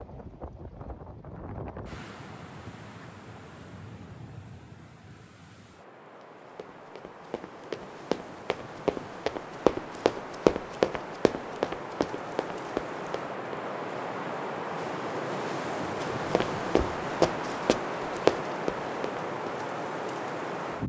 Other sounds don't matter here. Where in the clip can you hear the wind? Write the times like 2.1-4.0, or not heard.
0.0-20.8.